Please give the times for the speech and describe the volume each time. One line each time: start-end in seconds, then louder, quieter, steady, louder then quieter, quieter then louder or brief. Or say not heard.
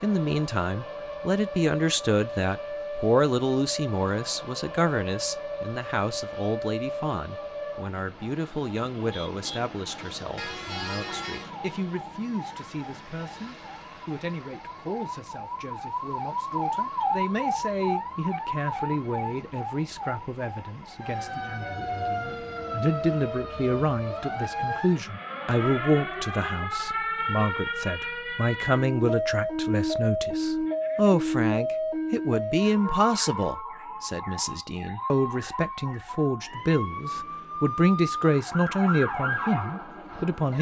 0.0-40.5 quieter then louder.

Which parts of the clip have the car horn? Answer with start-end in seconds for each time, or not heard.
10.3-11.5.